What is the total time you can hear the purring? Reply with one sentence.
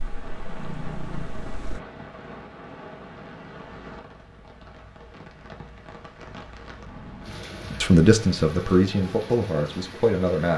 The purring can be heard for 2 seconds in total.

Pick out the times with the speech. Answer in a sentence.
The speech can be heard from 7.8 to 10.5 s.